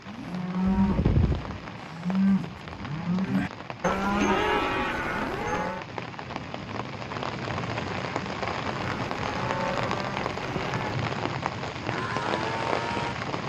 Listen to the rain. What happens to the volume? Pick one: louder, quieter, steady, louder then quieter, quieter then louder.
louder.